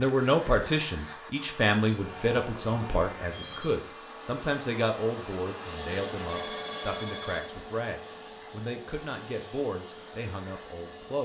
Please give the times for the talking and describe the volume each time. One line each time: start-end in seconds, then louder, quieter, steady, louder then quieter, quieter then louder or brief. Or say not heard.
0.0-11.2 quieter.